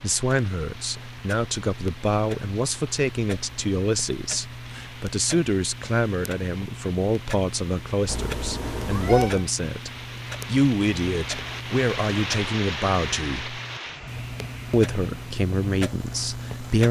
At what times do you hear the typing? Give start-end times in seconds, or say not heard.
not heard.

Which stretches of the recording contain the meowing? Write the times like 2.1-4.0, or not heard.
8.1-9.4.